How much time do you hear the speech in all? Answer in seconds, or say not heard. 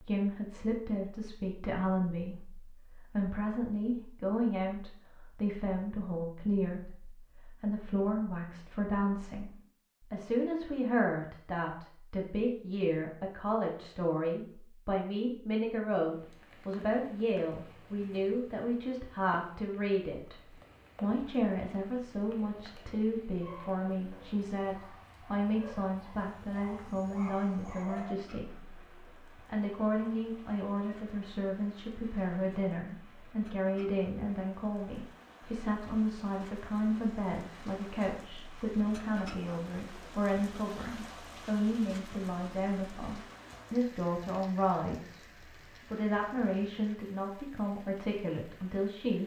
47 s.